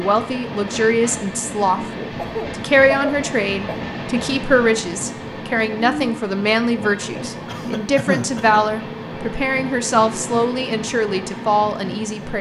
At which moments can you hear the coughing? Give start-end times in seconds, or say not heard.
2.1-3.9, 7.5-8.8.